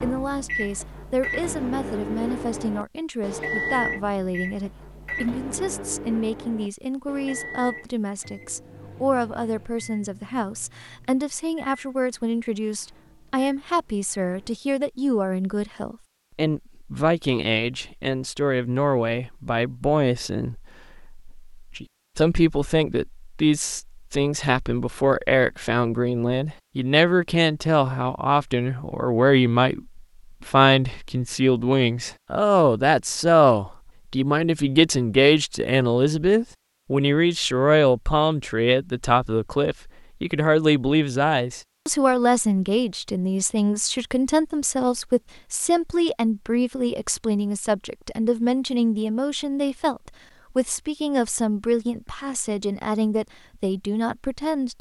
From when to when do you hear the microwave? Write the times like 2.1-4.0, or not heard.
0.0-14.6.